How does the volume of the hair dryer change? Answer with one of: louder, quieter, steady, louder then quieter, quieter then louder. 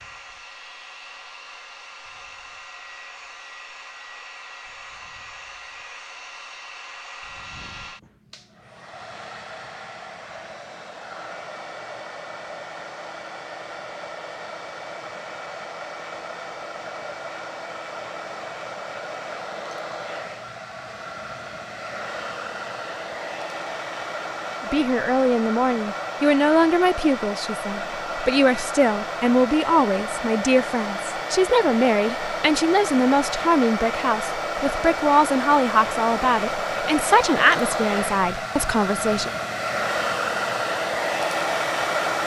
louder.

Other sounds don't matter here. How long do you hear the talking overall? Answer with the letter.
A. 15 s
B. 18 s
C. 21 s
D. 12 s
A.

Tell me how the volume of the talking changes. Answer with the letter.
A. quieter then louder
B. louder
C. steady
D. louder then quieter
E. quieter
C.